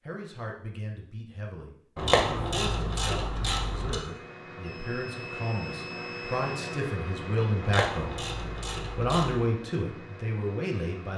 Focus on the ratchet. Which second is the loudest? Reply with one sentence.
The loudest moment of the ratchet is at 2 seconds.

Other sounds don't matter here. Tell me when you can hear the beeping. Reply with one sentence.
You can hear the beeping from 4.6 to 6.8 s.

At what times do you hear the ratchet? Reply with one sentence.
You can hear the ratchet from 1.9 to 4.0 s and from 7.6 to 9.5 s.